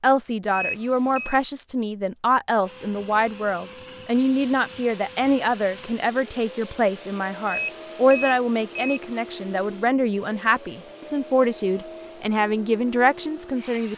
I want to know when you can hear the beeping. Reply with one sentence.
You can hear the beeping from 0.5 to 1.4 s and from 7.5 to 9.2 s.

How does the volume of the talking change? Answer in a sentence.
The loudness of the talking stays about the same.